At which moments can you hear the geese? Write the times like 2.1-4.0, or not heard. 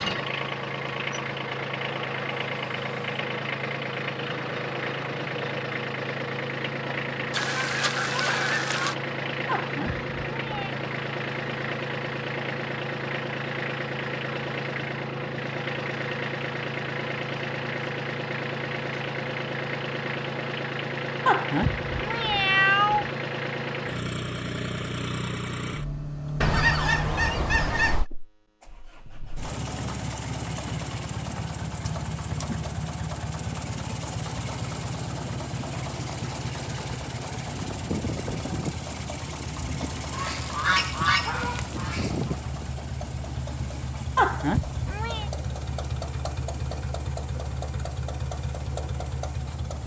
7.3-8.9, 26.4-28.1, 40.1-42.4.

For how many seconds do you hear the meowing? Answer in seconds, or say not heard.
4 s.